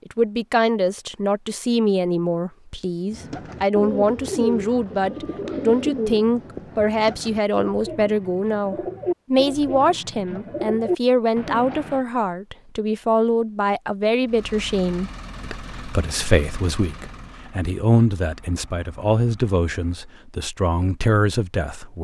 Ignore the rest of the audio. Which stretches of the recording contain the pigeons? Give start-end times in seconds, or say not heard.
3.1-12.1.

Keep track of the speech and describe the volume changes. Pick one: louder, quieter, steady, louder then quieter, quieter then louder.
steady.